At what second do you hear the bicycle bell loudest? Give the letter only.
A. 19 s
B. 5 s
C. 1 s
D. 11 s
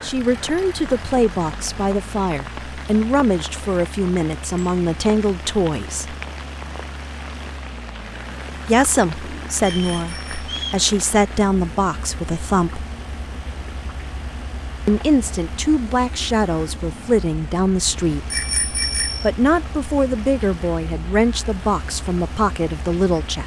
A.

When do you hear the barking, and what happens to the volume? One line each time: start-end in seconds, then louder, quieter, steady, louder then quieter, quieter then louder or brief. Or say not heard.
not heard.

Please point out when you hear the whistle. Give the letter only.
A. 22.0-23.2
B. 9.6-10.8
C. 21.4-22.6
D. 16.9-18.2
B.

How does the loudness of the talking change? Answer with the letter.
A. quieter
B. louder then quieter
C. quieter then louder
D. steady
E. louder
D.